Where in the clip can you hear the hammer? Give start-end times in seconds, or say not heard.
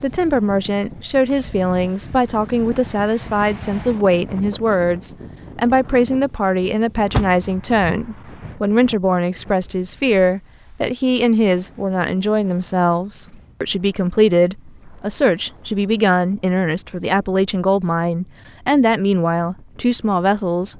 not heard.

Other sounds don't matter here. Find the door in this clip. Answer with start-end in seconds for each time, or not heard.
7.1-8.6.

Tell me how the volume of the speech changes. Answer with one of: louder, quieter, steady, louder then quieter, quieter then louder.
steady.